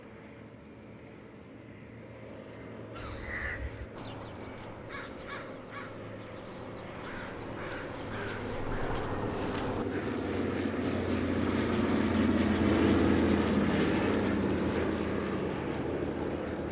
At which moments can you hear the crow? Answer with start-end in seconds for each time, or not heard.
3.0-10.1.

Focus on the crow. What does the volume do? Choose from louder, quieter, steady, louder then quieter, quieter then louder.
quieter then louder.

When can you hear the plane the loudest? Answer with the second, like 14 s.
13 s.